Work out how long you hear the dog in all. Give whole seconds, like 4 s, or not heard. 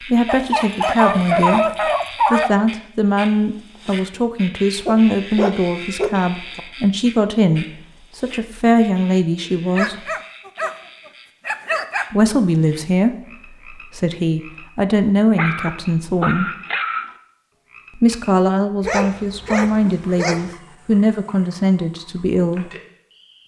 10 s.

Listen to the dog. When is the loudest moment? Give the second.
1 s.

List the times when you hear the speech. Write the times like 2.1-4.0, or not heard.
0.0-10.1, 12.1-16.6, 17.9-22.7.